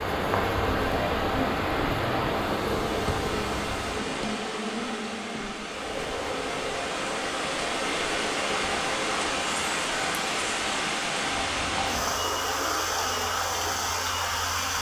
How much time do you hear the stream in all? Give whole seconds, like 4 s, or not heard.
15 s.